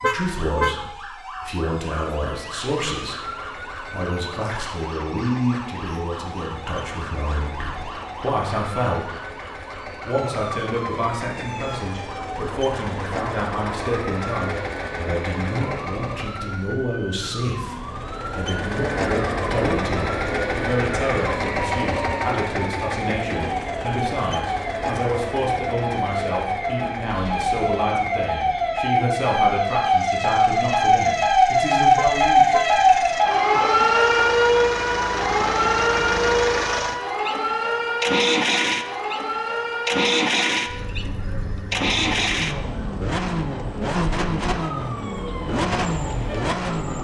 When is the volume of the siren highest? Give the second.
32 s.